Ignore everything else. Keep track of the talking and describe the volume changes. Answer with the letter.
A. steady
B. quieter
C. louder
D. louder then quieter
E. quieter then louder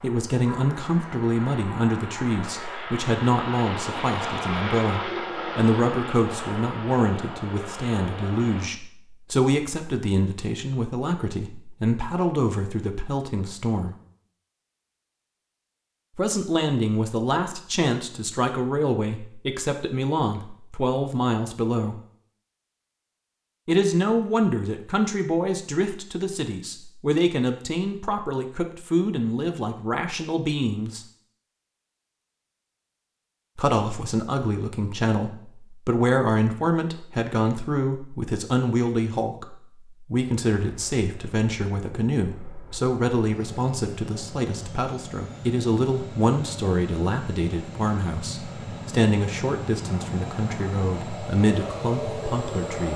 A.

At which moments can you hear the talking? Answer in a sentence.
The talking can be heard from 0.0 to 13.9 s, from 16.1 to 22.0 s, from 23.6 to 31.1 s and from 33.5 to 52.9 s.